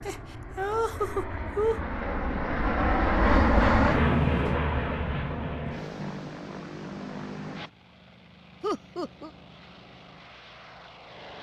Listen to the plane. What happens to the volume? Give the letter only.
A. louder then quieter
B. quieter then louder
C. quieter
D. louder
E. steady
A.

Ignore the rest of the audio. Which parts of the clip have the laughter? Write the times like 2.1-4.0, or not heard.
0.1-1.8, 8.6-9.3.